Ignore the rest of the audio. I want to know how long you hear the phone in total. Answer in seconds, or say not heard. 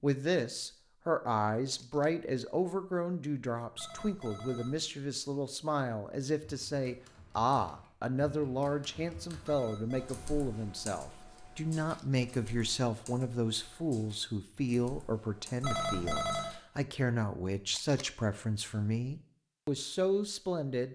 3 s.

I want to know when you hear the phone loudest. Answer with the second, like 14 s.
16 s.